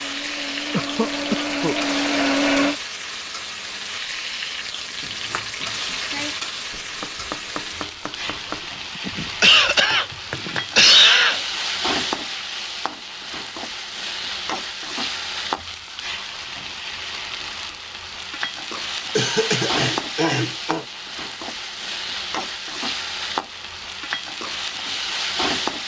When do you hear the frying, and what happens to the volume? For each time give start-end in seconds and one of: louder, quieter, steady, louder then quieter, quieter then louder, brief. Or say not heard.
0.0-25.8 steady.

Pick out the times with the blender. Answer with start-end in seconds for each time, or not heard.
0.0-2.8.